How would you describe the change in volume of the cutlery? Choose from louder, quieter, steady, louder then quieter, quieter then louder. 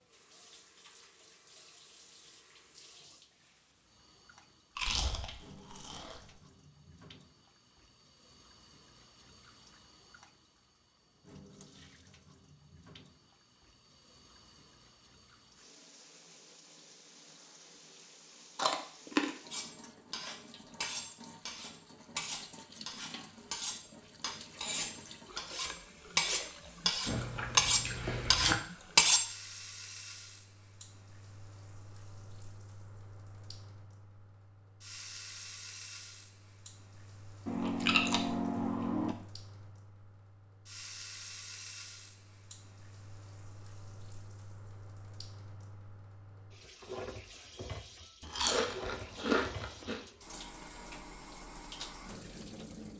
louder.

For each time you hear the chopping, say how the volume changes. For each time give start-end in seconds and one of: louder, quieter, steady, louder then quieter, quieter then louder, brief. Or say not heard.
not heard.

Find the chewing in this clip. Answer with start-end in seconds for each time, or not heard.
4.8-6.2, 18.6-19.5, 27.1-28.6, 37.5-39.1, 48.2-50.0.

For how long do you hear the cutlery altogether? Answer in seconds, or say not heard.
10 s.